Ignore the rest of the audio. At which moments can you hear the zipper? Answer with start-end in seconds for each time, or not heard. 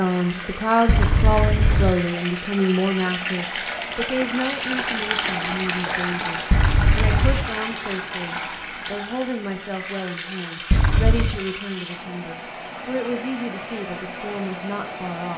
0.8-1.9, 6.5-7.5, 10.7-11.4.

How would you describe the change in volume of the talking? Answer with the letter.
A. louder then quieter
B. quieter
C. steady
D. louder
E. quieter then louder
B.